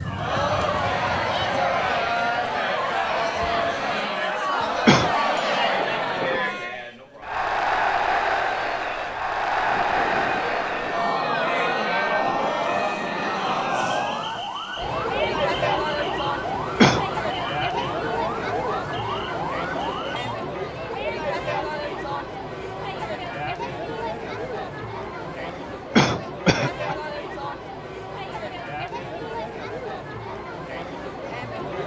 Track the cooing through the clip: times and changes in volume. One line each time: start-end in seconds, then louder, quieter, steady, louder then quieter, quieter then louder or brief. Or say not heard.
not heard.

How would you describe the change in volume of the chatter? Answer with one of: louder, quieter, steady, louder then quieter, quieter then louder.
quieter.